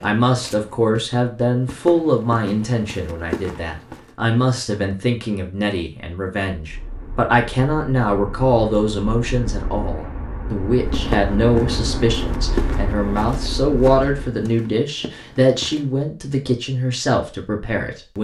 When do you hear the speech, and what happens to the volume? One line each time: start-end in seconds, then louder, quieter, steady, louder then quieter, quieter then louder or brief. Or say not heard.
0.0-18.1 steady.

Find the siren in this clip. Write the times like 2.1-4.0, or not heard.
not heard.